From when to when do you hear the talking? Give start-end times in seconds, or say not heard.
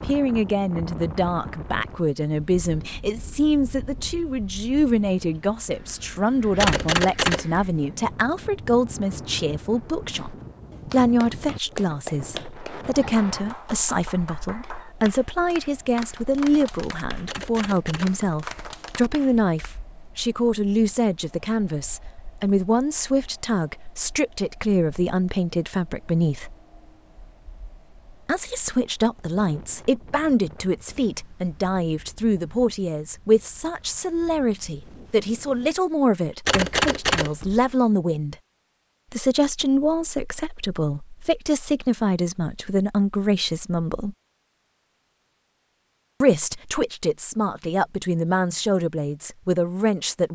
0.1-26.6, 28.2-38.4, 39.1-44.1, 46.2-50.2.